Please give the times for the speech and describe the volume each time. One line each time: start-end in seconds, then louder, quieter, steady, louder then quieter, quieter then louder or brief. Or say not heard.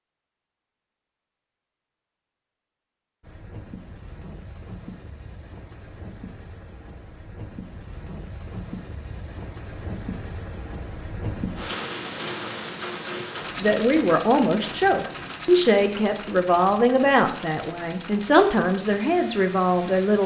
13.6-20.2 steady.